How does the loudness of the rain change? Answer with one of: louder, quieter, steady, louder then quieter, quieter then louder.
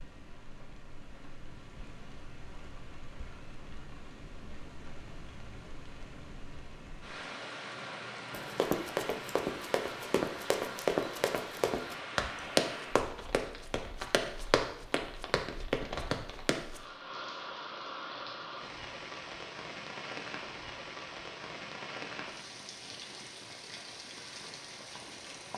louder.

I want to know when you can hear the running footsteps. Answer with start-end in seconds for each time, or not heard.
8.3-16.8.